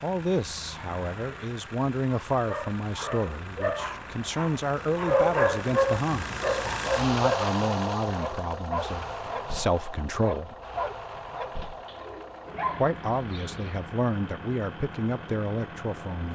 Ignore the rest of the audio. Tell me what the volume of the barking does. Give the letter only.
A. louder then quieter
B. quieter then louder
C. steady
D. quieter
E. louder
A.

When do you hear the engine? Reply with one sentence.
You can hear the engine from 0.0 to 16.3 s.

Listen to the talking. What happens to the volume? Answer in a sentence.
The loudness of the talking stays about the same.